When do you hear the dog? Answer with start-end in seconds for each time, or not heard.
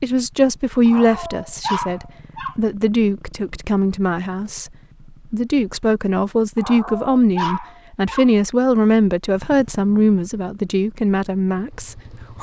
0.8-2.5, 6.5-8.3.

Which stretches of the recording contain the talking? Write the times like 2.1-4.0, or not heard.
0.0-4.7, 5.3-12.3.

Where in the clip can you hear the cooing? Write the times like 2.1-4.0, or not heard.
not heard.